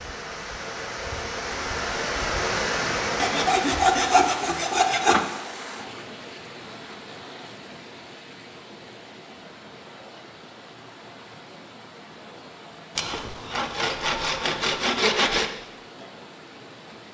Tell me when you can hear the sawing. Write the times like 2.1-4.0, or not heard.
3.1-5.2, 12.9-15.5.